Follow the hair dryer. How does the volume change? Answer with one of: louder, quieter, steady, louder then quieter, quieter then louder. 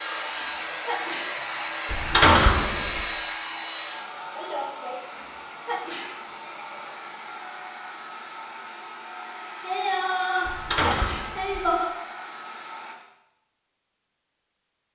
quieter then louder.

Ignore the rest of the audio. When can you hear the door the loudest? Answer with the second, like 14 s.
2 s.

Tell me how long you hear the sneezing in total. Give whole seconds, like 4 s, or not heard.
3 s.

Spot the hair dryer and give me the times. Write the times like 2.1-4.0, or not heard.
0.0-12.9.